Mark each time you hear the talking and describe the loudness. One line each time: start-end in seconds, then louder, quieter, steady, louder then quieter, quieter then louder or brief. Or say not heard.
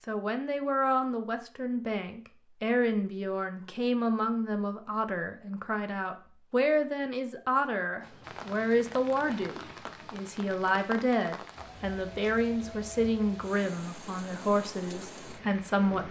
0.1-16.0 steady.